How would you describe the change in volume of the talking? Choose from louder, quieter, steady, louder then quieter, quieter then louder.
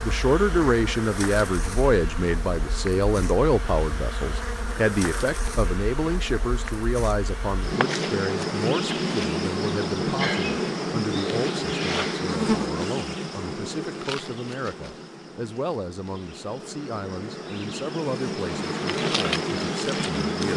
quieter.